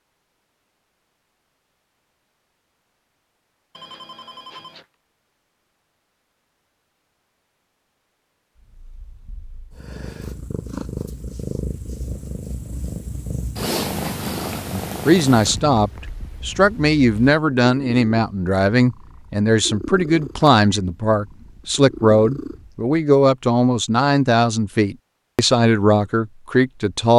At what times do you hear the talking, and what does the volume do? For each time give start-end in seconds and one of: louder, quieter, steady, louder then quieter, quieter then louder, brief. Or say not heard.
14.7-27.1 steady.